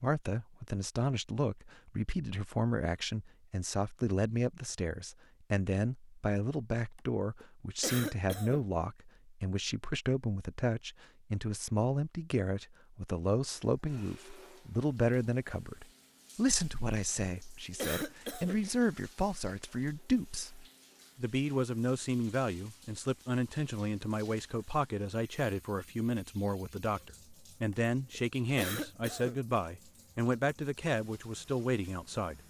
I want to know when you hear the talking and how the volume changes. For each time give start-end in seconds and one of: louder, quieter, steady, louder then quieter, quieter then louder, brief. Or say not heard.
0.0-32.4 steady.